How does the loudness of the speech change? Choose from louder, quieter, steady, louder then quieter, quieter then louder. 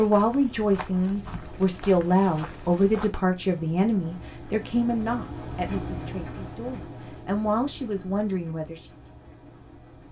quieter then louder.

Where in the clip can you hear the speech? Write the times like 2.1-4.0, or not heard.
0.0-8.8.